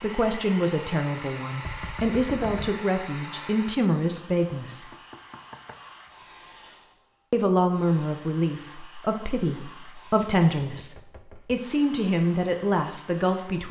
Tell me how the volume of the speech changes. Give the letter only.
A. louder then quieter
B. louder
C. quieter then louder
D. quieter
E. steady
E.